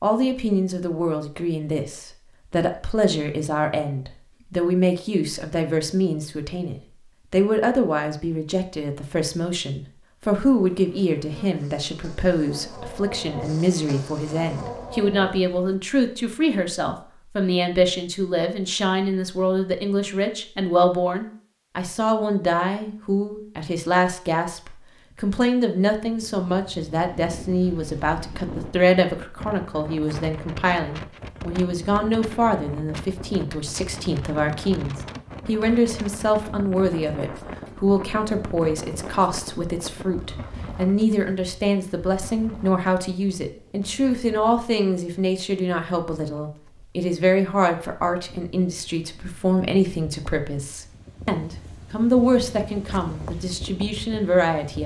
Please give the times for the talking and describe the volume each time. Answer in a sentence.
The talking can be heard from 0.0 to 54.8 s, at a steady volume.